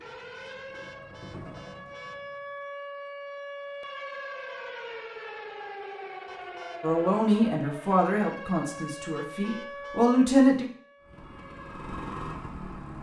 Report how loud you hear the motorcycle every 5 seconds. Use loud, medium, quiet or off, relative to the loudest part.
medium, off, loud.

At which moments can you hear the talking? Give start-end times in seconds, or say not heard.
6.8-10.7.